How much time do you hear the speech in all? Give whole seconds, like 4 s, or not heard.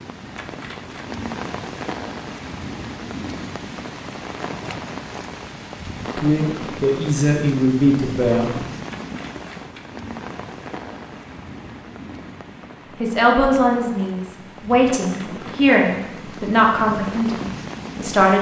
8 s.